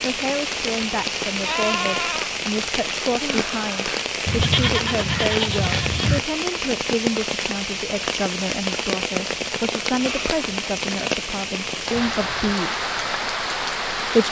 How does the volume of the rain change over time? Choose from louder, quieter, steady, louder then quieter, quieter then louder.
steady.